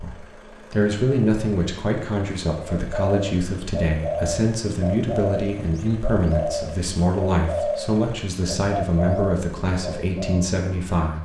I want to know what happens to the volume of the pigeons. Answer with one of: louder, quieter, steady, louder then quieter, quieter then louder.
steady.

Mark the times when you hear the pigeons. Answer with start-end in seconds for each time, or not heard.
2.6-10.5.